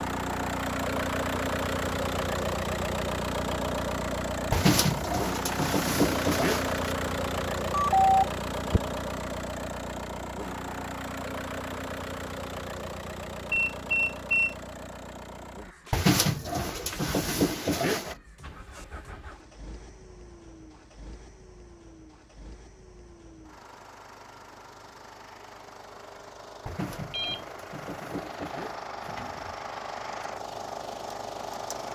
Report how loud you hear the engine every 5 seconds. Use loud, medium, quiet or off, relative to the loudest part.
loud, loud, medium, quiet, quiet, medium, medium.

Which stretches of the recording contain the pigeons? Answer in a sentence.
The pigeons can be heard from 4.5 to 6.9 s, from 15.9 to 18.1 s and from 26.6 to 29.6 s.